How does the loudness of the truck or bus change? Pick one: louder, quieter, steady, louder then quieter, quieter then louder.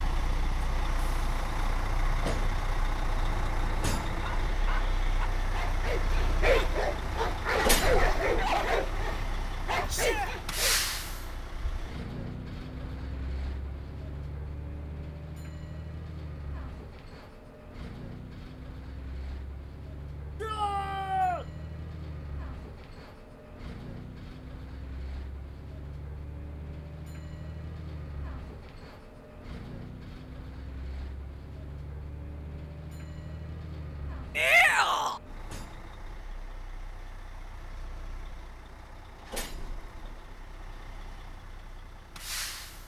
quieter.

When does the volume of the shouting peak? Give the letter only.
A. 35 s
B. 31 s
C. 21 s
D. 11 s
A.